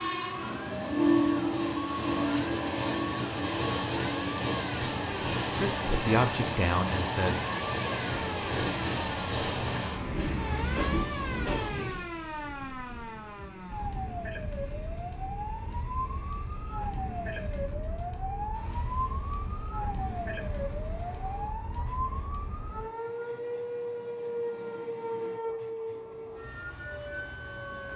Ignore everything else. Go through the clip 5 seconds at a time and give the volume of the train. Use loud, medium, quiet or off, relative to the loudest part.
loud, loud, medium, quiet, quiet, quiet.